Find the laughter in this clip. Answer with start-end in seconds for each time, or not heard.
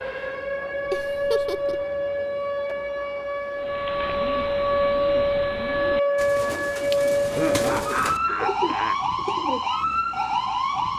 0.9-1.9, 7.3-9.0.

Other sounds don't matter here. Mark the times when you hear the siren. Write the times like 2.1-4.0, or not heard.
0.0-10.9.